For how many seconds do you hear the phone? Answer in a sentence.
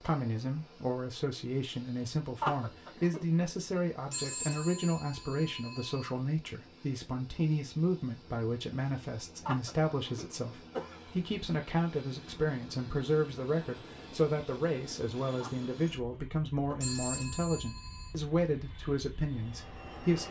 You can hear the phone for 3 seconds altogether.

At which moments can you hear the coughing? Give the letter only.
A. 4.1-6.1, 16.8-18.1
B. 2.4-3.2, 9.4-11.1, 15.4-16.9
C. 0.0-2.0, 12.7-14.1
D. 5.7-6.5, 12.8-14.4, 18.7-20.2
B.